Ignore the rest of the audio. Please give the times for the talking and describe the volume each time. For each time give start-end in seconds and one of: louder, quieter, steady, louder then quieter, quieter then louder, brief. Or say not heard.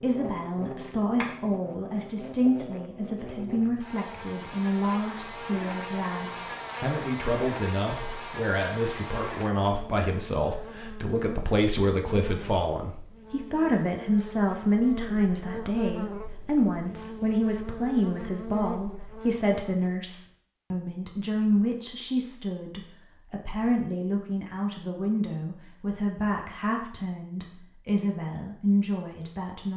0.0-29.7 steady.